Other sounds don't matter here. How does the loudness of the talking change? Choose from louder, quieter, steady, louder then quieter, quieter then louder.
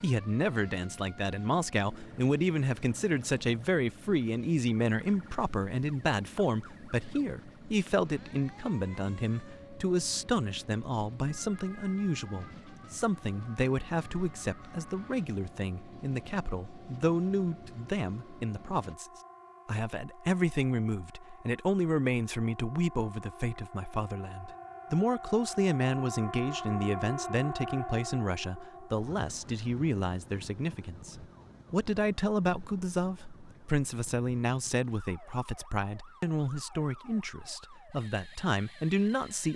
steady.